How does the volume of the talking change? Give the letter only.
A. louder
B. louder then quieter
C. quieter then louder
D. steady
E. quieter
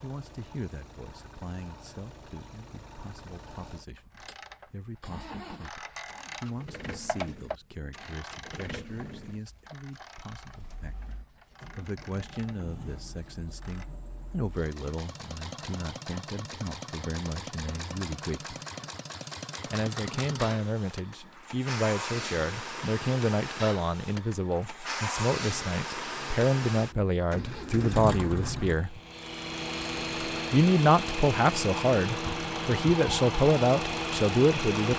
A.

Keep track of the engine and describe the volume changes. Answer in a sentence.
The loudness of the engine goes up.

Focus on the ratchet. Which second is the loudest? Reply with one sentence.
The loudest moment of the ratchet is at 7 seconds.